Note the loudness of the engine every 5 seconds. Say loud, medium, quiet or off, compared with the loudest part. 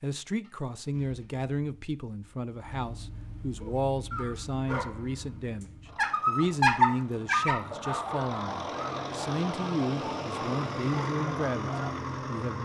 quiet, medium, loud.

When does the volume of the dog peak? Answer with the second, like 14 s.
7 s.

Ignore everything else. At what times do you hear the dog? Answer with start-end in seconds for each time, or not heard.
3.6-11.9.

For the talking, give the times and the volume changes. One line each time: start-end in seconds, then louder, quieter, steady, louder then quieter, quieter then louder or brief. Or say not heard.
0.0-12.5 steady.